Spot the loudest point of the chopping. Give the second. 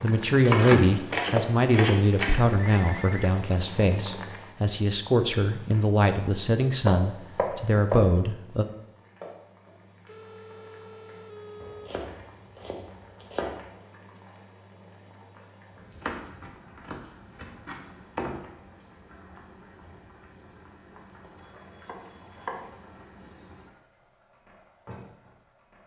1 s.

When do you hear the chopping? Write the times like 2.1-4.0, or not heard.
0.4-2.4, 6.8-8.1, 11.6-13.6, 15.9-18.5, 21.6-22.9.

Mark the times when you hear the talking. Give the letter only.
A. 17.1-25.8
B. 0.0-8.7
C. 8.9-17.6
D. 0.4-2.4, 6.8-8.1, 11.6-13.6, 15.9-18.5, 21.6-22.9
B.